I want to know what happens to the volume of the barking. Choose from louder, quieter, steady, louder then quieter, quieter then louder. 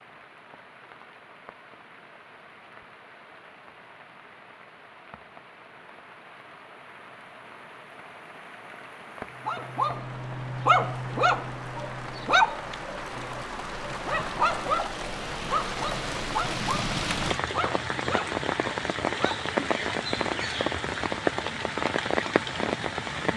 quieter.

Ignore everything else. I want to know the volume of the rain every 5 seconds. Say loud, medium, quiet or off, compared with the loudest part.
quiet, quiet, medium, loud, loud.